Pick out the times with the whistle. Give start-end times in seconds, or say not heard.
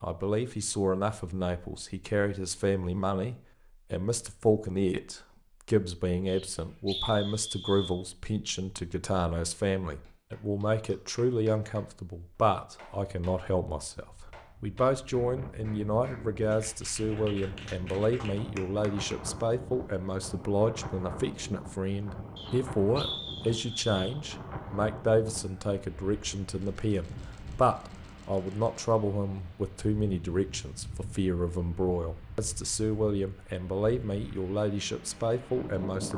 6.2-7.9, 22.4-24.1.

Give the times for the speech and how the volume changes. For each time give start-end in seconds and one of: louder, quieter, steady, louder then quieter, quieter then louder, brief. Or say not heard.
0.0-36.1 steady.